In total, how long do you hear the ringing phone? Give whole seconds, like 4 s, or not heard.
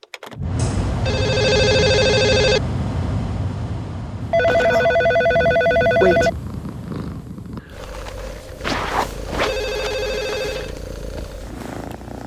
6 s.